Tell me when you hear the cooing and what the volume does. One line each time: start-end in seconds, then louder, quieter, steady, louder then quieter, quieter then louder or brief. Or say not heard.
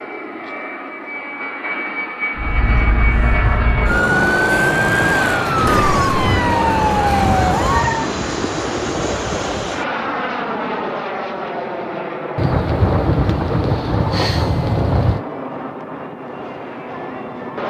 not heard.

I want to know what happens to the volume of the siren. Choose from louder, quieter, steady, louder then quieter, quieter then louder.
louder.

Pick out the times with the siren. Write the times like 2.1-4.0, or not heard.
2.4-8.1.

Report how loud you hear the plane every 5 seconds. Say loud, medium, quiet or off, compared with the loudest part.
loud, loud, loud, medium.